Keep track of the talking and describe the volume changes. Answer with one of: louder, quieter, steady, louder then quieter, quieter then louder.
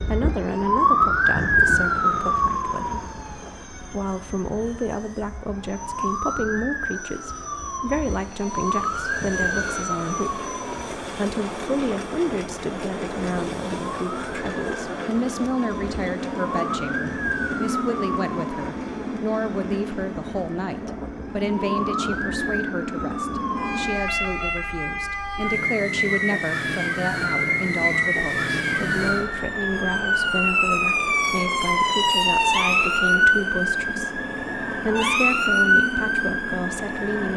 steady.